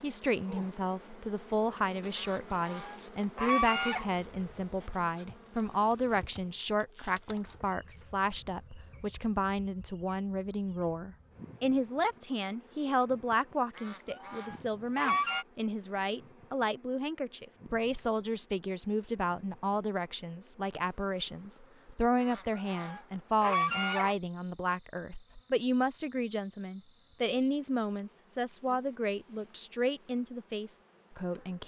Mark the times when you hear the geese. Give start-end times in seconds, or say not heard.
2.1-4.0, 13.8-15.4, 22.2-24.1.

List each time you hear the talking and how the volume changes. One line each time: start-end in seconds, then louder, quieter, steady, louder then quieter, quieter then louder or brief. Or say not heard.
0.0-31.6 steady.